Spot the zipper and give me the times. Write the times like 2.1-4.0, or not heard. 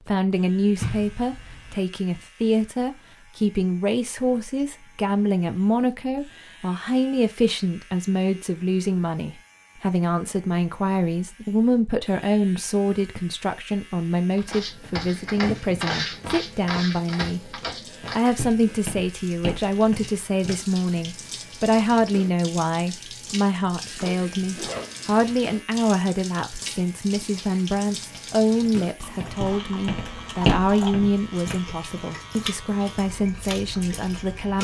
0.8-1.8, 23.9-25.1.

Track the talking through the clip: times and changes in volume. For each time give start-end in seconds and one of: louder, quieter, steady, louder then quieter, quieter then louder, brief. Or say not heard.
0.1-34.5 steady.